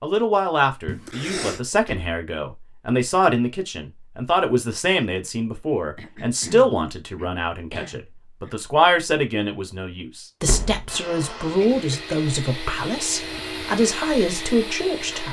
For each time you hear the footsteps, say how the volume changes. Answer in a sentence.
You can't hear the footsteps here.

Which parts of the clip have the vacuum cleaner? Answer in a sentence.
The vacuum cleaner can be heard from 10.8 to 15.2 s.